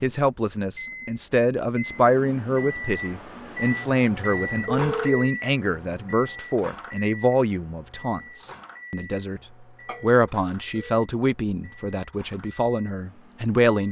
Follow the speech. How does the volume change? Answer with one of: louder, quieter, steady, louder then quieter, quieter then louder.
steady.